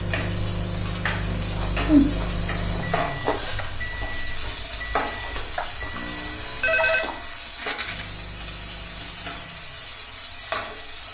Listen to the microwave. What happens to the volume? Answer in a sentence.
The volume of the microwave goes down.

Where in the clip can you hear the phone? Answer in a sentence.
The phone can be heard from 5.9 to 7.1 s.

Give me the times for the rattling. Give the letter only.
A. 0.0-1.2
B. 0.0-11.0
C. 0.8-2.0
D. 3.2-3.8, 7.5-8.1
D.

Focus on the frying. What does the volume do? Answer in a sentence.
The loudness of the frying stays about the same.